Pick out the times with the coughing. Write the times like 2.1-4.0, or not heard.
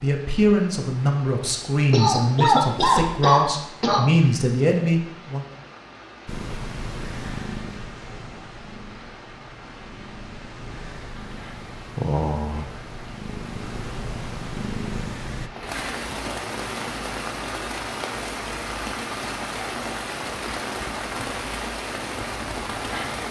1.9-4.2.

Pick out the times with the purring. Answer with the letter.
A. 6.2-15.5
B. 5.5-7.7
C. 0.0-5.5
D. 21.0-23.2
A.